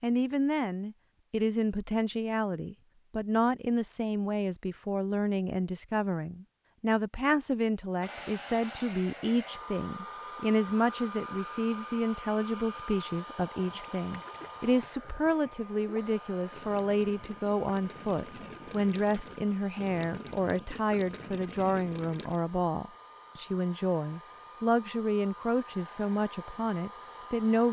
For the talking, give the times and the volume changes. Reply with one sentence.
You can hear the talking from 0.0 to 27.6 s, at a steady volume.